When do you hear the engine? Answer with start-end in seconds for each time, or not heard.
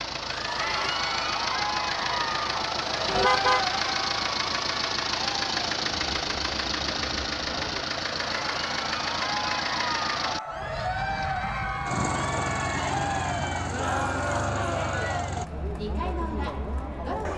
0.0-15.5.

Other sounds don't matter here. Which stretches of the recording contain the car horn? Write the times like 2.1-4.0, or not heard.
3.0-3.6.